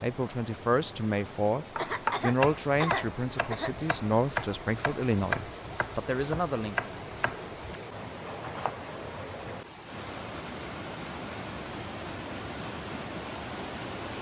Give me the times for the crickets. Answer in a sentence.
You can't hear the crickets here.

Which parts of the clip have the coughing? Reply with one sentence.
You can hear the coughing from 1.8 to 3.8 s.